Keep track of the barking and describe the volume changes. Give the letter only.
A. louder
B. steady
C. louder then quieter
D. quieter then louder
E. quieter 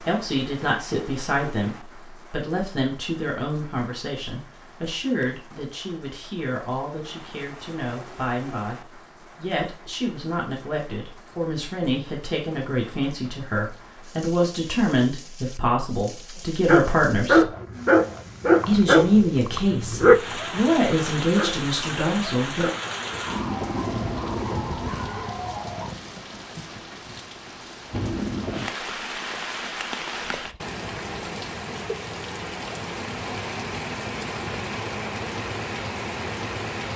E.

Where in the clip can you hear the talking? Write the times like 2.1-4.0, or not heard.
0.1-17.4, 18.6-22.7.